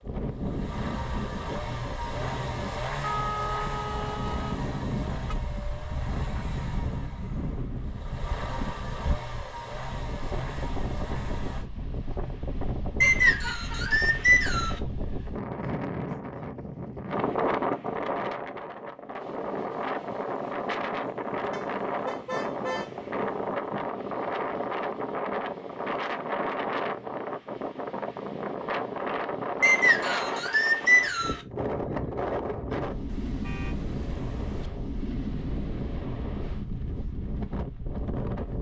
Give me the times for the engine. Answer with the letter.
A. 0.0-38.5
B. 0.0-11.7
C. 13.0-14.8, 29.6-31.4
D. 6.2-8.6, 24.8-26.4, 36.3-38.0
B.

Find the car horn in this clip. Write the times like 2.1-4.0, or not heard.
3.0-5.3, 21.5-23.1, 33.0-34.7.